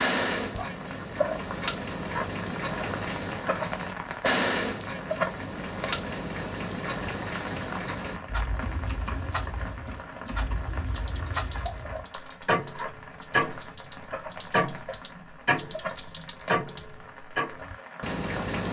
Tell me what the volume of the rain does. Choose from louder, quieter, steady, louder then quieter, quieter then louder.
quieter.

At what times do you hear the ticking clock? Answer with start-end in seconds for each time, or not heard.
0.0-18.6.